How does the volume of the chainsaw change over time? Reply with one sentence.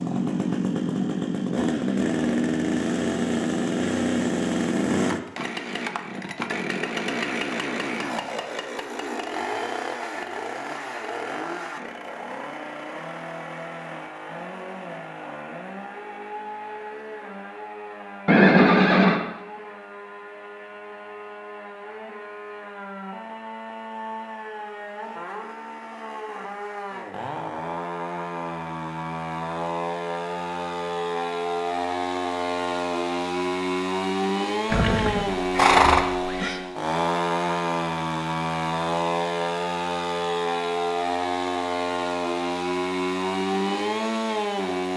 The loudness of the chainsaw goes down, then up.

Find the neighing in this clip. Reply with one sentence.
You can hear the neighing from 18.2 to 19.2 s and from 34.7 to 36.6 s.